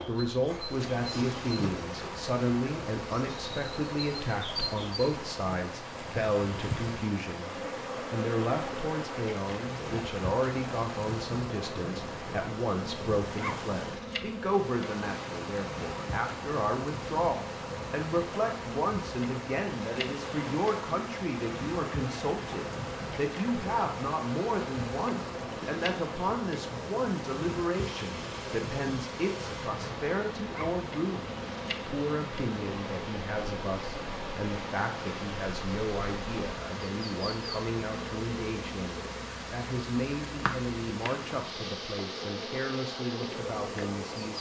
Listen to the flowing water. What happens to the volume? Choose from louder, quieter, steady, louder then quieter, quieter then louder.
steady.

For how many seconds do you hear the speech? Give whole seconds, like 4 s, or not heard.
44 s.